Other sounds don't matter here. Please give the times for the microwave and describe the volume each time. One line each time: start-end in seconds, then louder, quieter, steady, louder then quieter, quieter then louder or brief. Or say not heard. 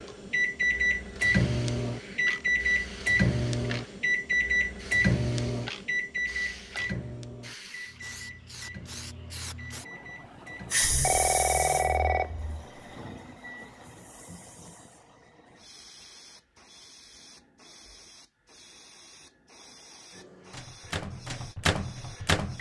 0.0-14.8 quieter
20.1-22.5 brief.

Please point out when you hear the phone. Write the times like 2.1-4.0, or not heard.
10.8-12.7.